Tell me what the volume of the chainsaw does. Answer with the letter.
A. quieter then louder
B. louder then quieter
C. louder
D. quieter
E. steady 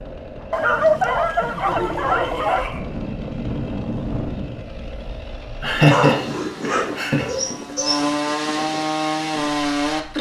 C.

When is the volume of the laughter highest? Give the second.
6 s.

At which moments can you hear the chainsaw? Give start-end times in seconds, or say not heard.
0.0-10.1.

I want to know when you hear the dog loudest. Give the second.
1 s.